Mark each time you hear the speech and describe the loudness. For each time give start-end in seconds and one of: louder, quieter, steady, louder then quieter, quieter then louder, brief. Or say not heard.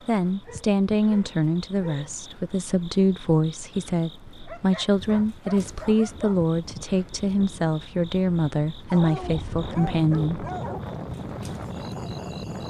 0.1-10.4 steady.